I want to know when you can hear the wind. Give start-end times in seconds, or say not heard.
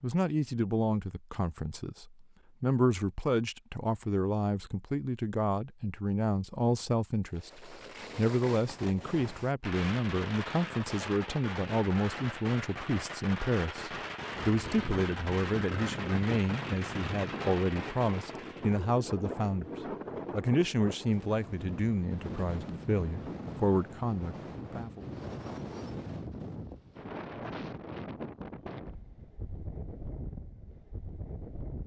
14.3-31.8.